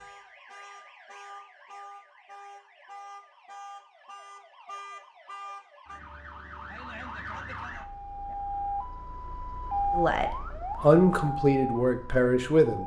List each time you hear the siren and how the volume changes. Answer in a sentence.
You can hear the siren from 0.0 to 12.8 s, getting louder.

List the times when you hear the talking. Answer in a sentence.
You can hear the talking from 9.9 to 12.8 s.